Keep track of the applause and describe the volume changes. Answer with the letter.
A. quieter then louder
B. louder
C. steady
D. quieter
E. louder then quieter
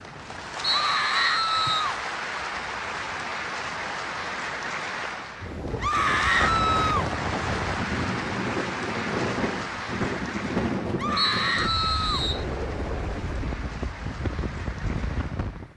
D.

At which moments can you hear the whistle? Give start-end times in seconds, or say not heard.
0.7-1.9, 11.2-12.4.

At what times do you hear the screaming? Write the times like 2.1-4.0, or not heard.
0.7-1.8, 5.8-7.1, 10.9-12.2.